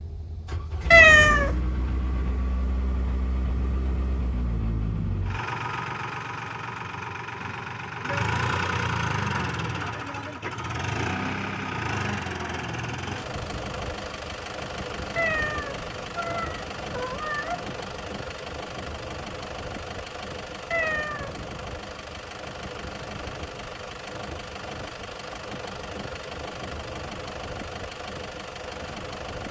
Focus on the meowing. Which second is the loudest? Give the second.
1 s.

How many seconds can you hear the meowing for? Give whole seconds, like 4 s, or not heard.
4 s.